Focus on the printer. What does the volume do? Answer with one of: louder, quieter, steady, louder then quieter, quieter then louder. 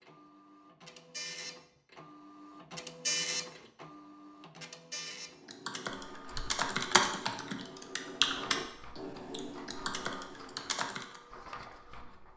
louder then quieter.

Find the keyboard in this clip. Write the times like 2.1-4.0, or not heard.
5.5-11.2.